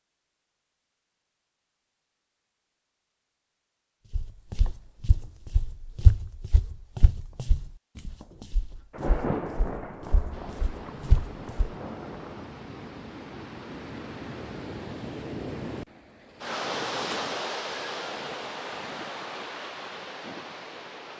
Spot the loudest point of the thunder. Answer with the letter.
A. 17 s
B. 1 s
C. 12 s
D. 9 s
D.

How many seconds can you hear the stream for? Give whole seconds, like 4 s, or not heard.
11 s.